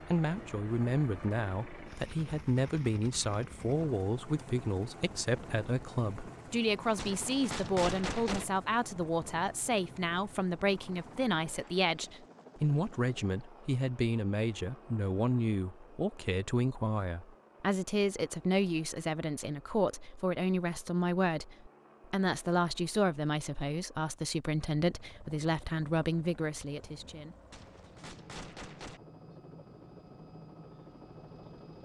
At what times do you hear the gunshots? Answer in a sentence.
The gunshots can be heard from 7.0 to 8.4 s and from 27.5 to 29.0 s.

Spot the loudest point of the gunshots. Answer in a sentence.
The loudest moment of the gunshots is at 8 seconds.